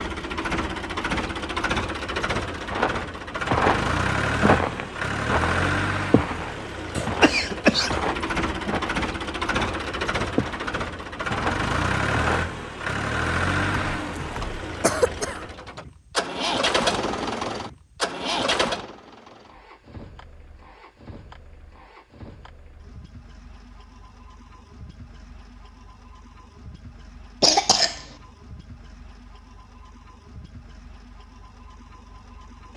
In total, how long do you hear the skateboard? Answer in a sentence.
You can't hear the skateboard here.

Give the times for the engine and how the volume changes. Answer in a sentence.
The engine can be heard from 0.0 to 32.7 s, getting quieter.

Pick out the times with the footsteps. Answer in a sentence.
You can hear the footsteps from 2.7 to 12.6 s.